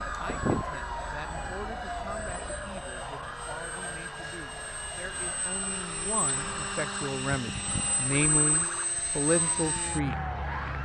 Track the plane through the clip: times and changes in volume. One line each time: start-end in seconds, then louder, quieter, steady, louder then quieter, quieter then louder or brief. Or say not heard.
0.0-10.8 quieter then louder.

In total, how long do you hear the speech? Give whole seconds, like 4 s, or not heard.
10 s.